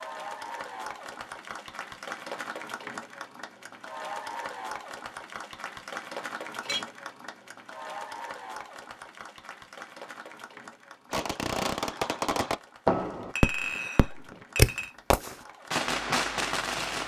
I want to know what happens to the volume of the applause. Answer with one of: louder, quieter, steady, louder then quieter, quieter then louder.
quieter.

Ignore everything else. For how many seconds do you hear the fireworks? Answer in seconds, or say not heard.
6 s.